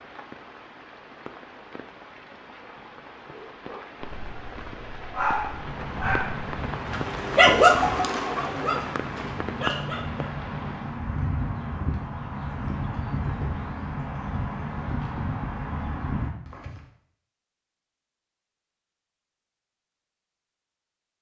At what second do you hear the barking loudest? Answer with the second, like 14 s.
8 s.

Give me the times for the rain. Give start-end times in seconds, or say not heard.
0.0-11.0.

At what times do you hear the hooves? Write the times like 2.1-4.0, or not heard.
5.4-16.8.